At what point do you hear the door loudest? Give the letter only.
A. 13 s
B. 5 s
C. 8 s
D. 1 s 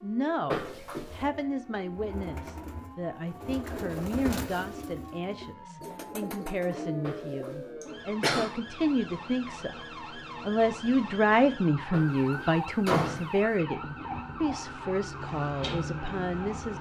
A.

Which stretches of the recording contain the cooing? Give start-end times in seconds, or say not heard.
1.1-8.1.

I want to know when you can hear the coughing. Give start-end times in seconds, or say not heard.
7.8-8.5.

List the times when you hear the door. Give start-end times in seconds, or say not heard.
0.5-1.2, 7.0-7.7, 11.9-13.3.